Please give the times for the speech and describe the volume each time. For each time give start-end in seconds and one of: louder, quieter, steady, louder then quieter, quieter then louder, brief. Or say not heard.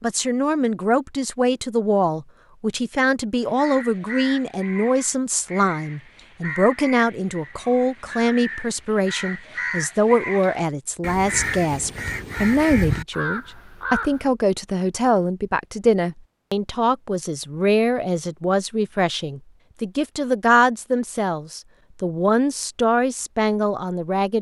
0.0-24.3 steady.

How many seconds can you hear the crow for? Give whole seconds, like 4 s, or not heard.
11 s.